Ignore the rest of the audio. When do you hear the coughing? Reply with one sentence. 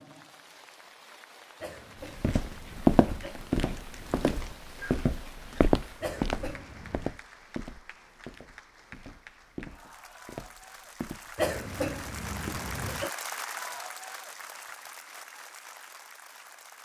The coughing can be heard from 1.6 to 3.4 s, from 6.0 to 7.2 s and from 11.3 to 13.1 s.